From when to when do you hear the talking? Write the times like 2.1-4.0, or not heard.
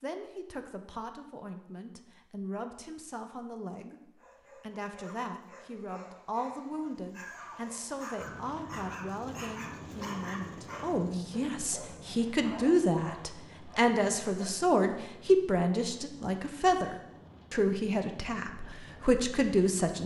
0.0-20.0.